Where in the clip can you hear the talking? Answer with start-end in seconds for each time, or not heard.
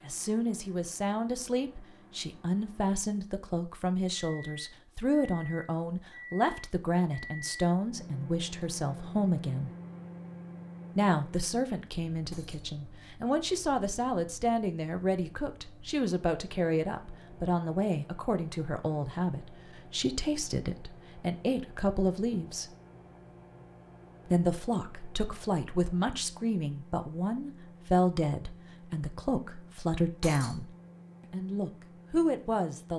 0.1-9.7, 10.9-22.7, 24.2-30.7, 31.3-32.9.